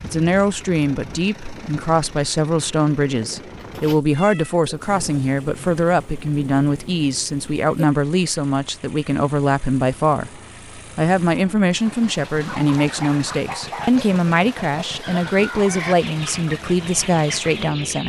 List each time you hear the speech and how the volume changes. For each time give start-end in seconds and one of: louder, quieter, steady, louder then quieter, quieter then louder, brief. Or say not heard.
0.0-18.0 steady.